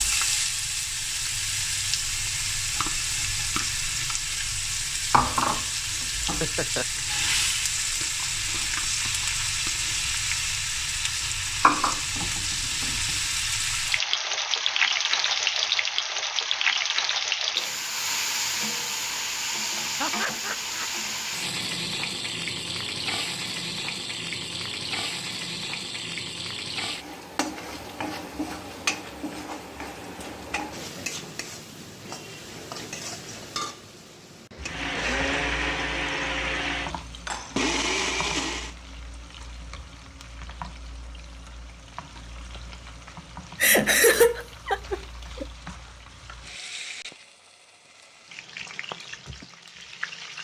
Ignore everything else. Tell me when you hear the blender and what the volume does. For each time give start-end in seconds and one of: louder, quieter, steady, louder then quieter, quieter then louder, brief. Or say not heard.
34.6-38.8 steady.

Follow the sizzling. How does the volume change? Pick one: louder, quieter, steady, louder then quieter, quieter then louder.
quieter.